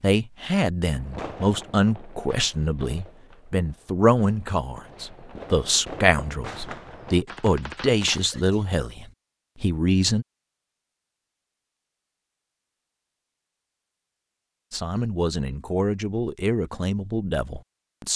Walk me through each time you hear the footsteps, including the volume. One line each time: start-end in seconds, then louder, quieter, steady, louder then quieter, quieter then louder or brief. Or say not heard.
not heard.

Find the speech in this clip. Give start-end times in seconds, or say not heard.
0.0-10.2, 14.7-18.1.